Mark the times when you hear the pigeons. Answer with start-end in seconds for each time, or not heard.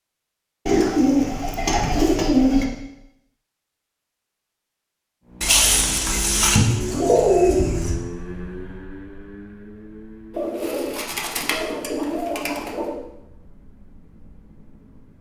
0.7-2.6, 5.4-8.0, 10.3-12.9.